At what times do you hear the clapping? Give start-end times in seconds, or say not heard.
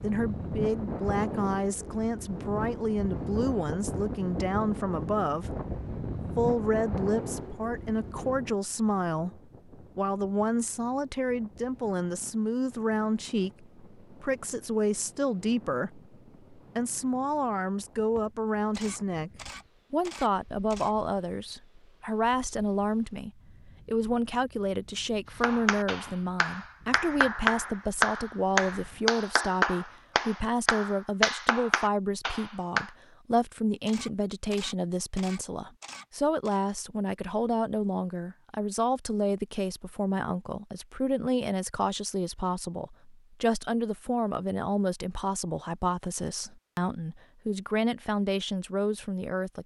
25.4-32.9.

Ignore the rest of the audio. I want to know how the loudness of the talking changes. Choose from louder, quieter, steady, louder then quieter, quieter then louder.
steady.